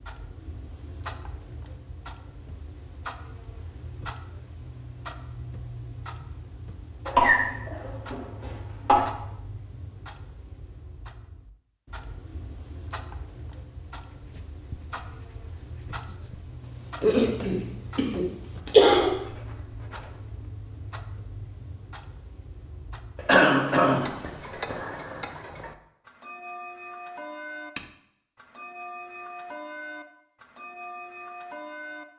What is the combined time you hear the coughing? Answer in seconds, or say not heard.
6 s.